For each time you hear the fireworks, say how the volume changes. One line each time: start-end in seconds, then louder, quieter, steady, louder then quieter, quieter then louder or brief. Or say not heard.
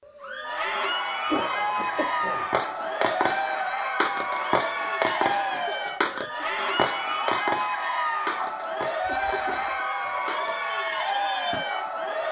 2.5-11.6 quieter.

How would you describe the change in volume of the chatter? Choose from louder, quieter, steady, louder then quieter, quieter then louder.
steady.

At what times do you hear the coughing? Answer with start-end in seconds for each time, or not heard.
1.2-2.5, 5.5-6.5, 9.0-9.8.